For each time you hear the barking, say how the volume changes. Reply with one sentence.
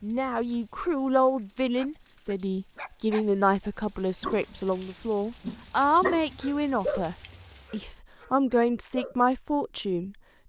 The barking can be heard from 1.8 to 9.2 s, getting louder then quieter.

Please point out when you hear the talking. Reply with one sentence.
You can hear the talking from 0.0 to 10.2 s.